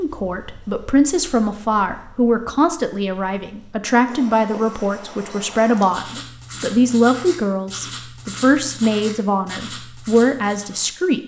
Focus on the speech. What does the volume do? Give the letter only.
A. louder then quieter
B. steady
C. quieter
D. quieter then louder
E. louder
B.